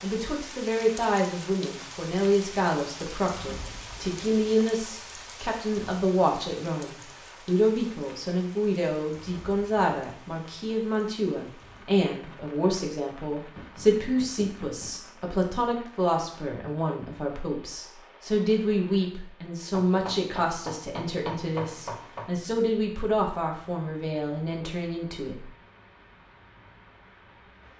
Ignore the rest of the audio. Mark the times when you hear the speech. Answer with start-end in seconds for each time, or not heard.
0.0-25.5.